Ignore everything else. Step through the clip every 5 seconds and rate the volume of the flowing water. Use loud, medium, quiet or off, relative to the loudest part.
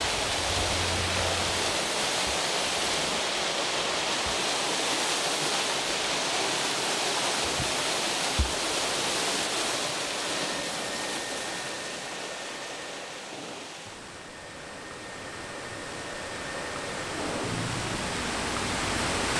loud, loud, medium, medium.